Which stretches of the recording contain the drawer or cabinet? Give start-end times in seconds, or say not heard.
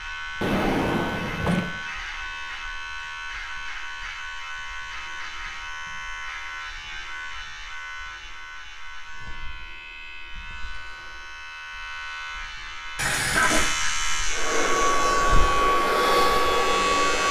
0.4-1.7.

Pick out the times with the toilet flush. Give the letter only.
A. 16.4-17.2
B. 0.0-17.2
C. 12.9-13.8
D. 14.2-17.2
C.